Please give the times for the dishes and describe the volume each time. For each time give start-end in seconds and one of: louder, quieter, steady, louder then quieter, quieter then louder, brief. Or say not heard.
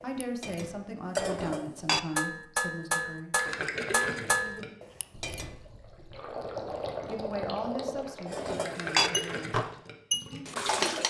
0.0-5.5 steady
8.3-11.0 brief.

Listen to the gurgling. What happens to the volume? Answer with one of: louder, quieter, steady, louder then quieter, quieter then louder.
quieter then louder.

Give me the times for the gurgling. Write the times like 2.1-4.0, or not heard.
3.4-10.4.